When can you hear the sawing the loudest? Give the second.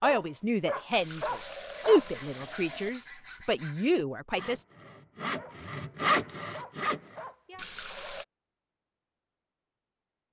6 s.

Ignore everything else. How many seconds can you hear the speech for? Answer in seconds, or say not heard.
5 s.